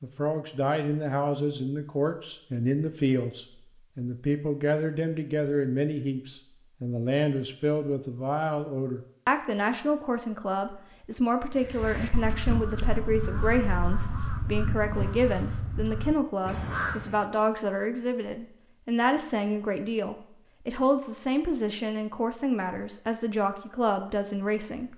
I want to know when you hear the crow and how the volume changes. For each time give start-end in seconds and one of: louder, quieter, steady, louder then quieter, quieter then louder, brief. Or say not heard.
11.6-17.2 steady.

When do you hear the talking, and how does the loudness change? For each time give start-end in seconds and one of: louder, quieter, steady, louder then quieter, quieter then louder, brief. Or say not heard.
0.0-24.9 steady.